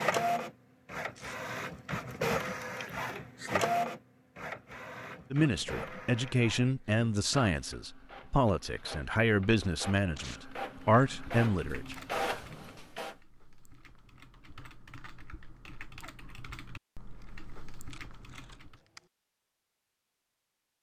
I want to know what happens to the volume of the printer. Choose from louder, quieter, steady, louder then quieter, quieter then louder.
quieter then louder.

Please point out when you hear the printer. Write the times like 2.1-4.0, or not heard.
0.0-13.2.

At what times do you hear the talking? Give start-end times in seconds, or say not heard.
5.3-11.9.